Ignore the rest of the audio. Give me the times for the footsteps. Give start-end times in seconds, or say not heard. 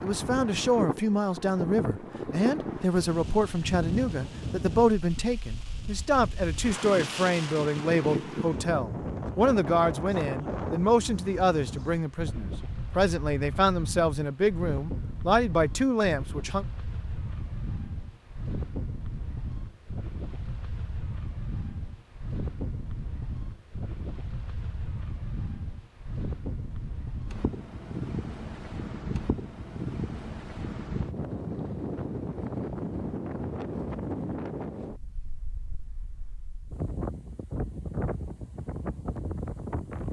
not heard.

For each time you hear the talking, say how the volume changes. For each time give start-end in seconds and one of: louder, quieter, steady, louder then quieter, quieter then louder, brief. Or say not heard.
0.0-16.6 steady.